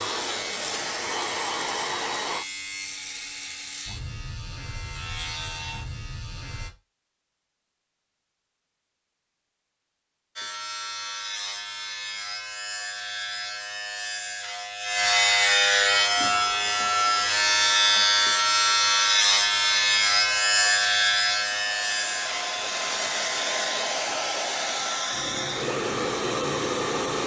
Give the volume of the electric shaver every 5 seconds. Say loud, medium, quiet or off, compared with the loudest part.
quiet, quiet, quiet, loud, loud, quiet.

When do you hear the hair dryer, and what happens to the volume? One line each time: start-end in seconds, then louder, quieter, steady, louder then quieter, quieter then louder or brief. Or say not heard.
0.0-2.5 brief
15.8-27.2 louder.